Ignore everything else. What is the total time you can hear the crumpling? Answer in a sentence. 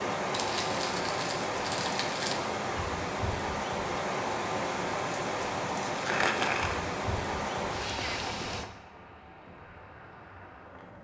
You can hear the crumpling for 3 seconds altogether.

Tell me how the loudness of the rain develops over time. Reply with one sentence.
The loudness of the rain goes down.